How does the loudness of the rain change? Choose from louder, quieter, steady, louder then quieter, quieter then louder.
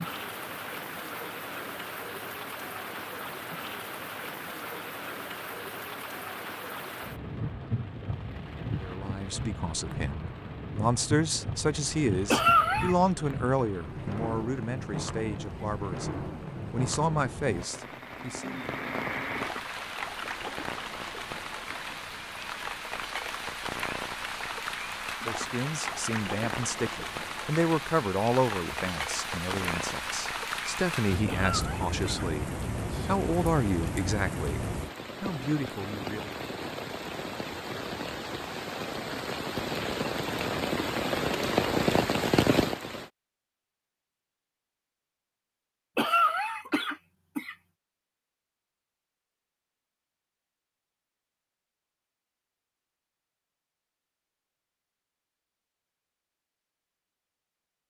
louder.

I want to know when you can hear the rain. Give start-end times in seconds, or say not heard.
0.0-43.1.